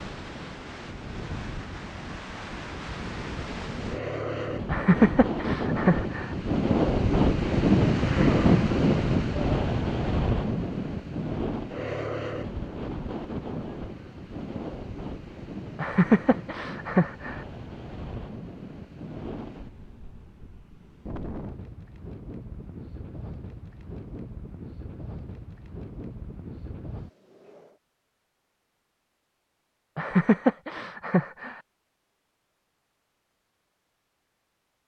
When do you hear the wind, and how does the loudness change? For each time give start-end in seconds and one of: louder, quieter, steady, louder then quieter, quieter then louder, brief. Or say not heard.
0.0-27.8 louder then quieter.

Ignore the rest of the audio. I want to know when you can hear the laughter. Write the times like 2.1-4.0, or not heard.
4.7-6.3, 15.8-17.4, 29.9-31.6.